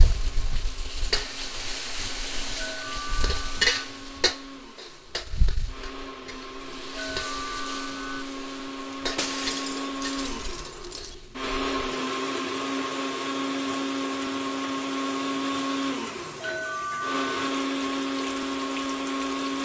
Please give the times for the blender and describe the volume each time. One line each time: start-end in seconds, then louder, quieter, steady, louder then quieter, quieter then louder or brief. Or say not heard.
0.0-19.6 louder.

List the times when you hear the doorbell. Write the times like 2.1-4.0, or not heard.
2.5-3.9, 6.8-8.2, 16.2-17.3.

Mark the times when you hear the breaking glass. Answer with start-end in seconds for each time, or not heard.
9.2-11.2.